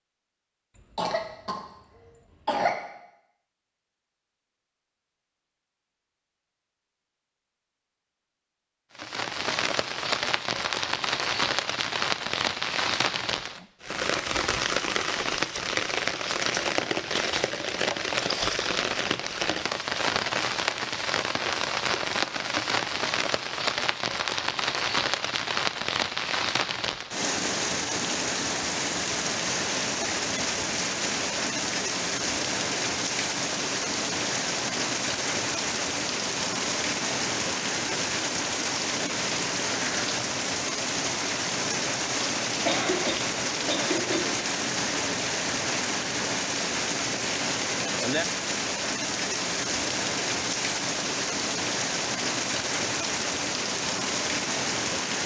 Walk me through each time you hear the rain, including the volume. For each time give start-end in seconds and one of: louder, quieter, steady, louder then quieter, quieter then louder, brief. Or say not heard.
8.9-55.2 steady.